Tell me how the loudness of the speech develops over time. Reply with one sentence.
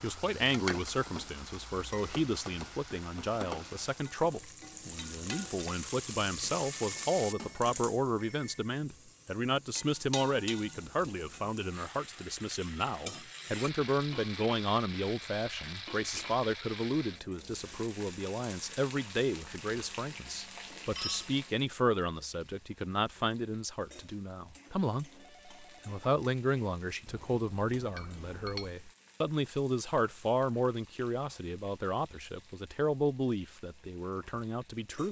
The loudness of the speech stays about the same.